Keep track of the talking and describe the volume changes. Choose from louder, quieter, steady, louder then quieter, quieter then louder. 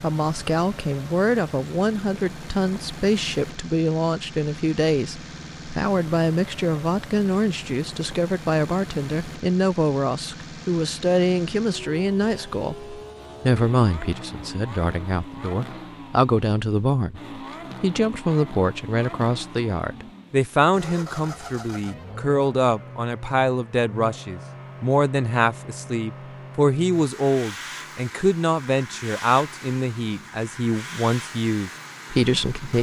steady.